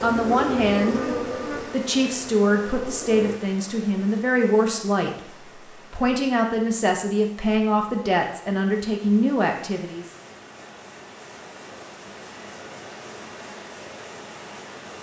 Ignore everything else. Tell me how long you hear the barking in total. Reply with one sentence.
The barking can't be heard in this clip.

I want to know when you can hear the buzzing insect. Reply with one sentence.
The buzzing insect can be heard from 0.0 to 3.4 s.